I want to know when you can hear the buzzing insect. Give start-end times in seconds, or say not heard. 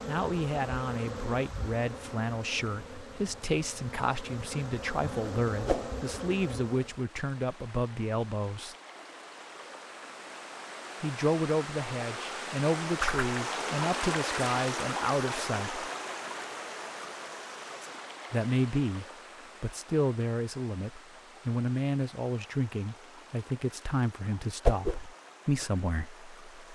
0.0-7.0.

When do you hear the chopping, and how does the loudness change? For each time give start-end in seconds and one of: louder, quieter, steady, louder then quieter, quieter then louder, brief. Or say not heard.
not heard.